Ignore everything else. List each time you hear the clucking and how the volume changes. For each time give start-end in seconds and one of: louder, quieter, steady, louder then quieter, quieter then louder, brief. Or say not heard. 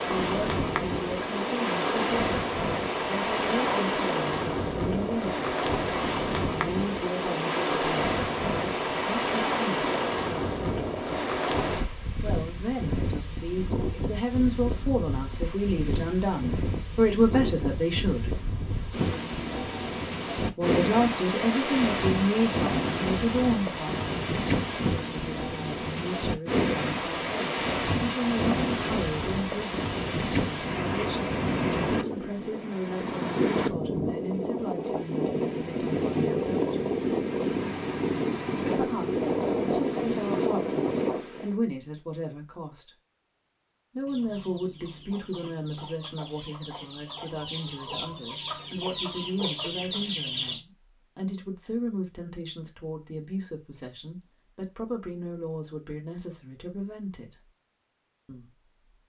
44.0-50.6 louder.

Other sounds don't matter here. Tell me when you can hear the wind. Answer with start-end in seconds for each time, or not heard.
0.0-41.5.